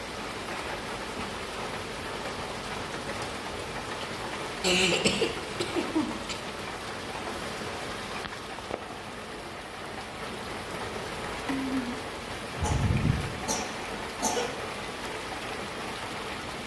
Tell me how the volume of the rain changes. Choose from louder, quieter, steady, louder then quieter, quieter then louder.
steady.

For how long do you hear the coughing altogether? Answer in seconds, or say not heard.
4 s.